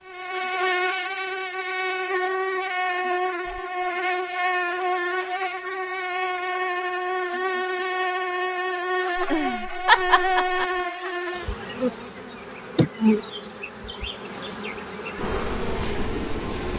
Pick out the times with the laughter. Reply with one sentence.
You can hear the laughter from 9.2 to 10.7 s.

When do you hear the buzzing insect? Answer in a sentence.
The buzzing insect can be heard from 0.1 to 16.7 s.